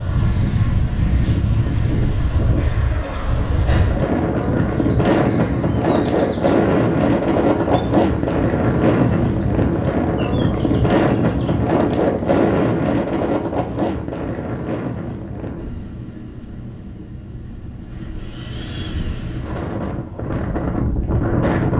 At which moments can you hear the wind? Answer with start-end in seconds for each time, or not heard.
0.0-21.7.